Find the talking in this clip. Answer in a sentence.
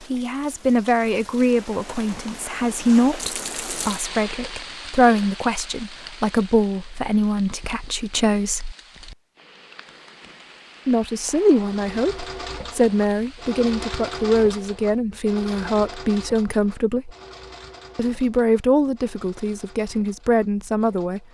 The talking can be heard from 0.1 to 8.8 s, from 10.8 to 17.1 s and from 17.9 to 21.2 s.